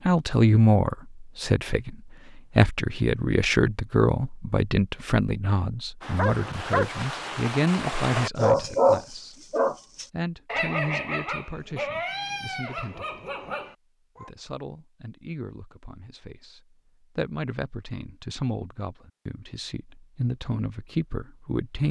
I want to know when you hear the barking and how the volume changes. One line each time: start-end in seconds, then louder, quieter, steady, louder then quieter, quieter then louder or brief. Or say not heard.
6.0-14.3 louder then quieter.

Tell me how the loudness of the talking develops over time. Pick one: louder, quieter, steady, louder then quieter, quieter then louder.
quieter then louder.